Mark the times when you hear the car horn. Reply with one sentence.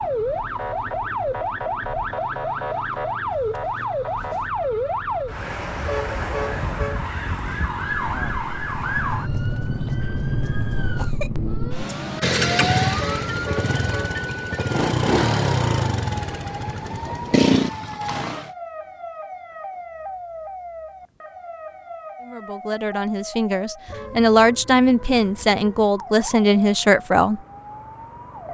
The car horn can be heard from 5.8 to 7.1 s, from 12.9 to 14.2 s and from 23.9 to 24.6 s.